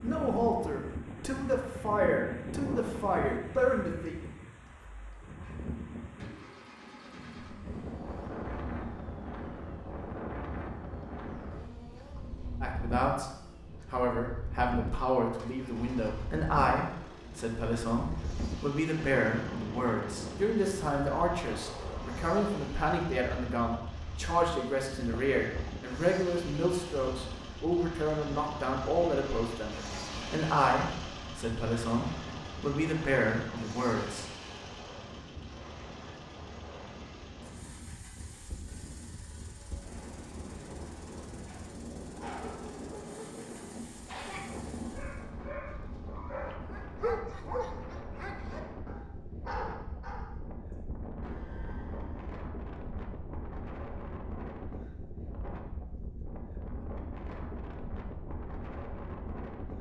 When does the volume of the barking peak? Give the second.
47 s.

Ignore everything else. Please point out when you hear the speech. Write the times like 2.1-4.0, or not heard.
0.0-4.2, 12.6-13.3, 13.9-34.2.